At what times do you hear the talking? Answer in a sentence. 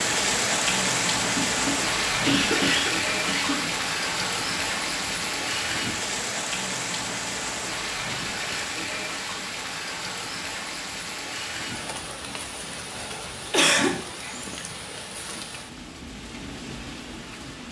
You can't hear the talking here.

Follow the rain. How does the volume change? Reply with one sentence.
The loudness of the rain goes down.